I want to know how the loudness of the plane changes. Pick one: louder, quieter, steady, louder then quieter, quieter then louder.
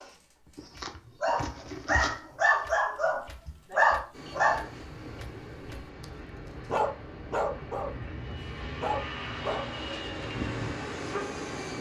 louder.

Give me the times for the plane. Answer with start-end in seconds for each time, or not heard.
4.1-11.7.